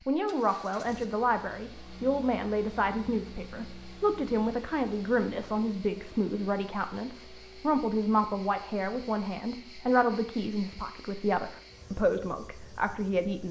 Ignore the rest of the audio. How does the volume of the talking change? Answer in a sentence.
The loudness of the talking stays about the same.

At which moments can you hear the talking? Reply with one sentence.
You can hear the talking from 0.1 to 13.4 s.